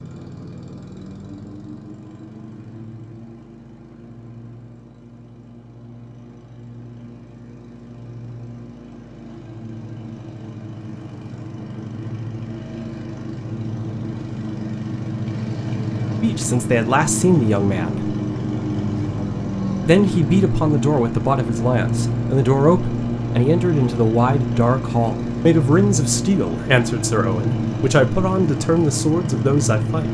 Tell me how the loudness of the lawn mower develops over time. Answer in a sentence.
The volume of the lawn mower goes up.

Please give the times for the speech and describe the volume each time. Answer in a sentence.
The speech can be heard briefly from 16.2 to 18.1 s; and from 19.9 to 30.0 s, at a steady volume.